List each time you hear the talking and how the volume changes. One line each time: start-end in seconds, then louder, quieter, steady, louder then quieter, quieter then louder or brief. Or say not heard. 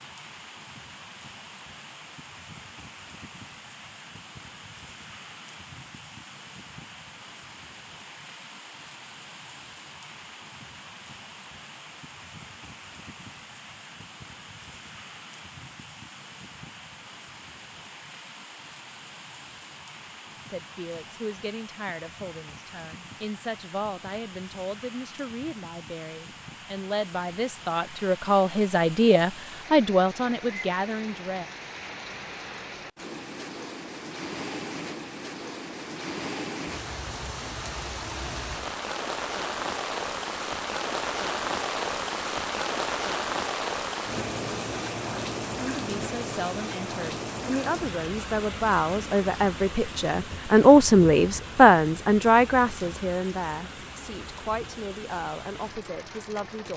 20.4-31.4 louder
45.6-56.7 louder then quieter.